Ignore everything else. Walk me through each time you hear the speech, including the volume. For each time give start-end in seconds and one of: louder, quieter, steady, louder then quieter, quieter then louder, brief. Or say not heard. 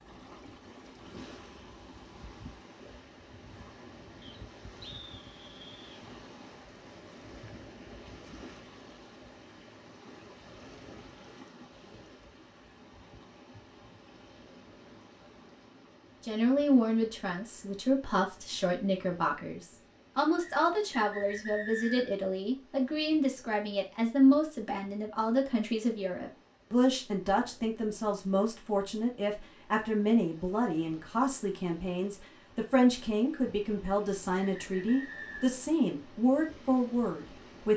16.2-37.7 steady.